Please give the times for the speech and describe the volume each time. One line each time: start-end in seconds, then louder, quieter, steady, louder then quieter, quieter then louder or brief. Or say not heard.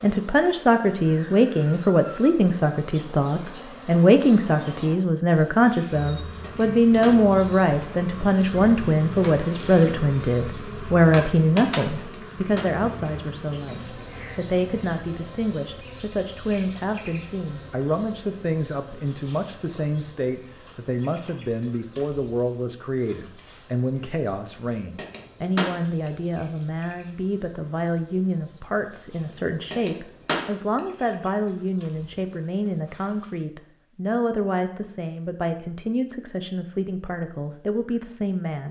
0.0-38.6 quieter.